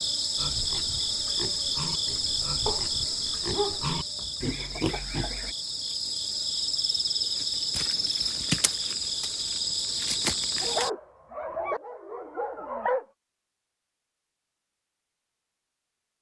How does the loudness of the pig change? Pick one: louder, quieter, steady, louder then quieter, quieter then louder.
louder.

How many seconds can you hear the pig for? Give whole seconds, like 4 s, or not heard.
5 s.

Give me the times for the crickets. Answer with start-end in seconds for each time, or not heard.
0.0-10.9.